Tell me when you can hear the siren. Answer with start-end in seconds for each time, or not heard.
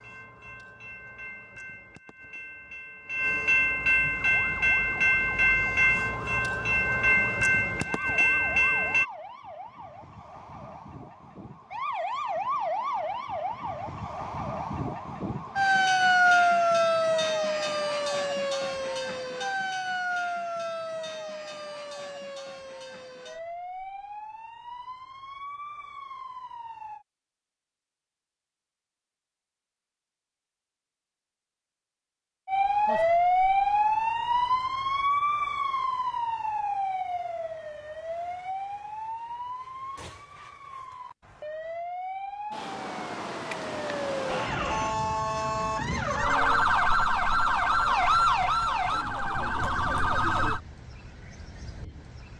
4.1-27.1, 32.5-50.6.